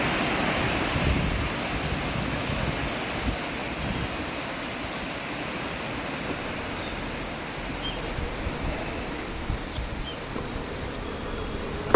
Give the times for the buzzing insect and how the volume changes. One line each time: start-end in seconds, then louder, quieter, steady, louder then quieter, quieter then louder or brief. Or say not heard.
6.2-11.9 louder.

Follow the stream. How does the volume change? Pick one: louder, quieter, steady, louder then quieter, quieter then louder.
quieter.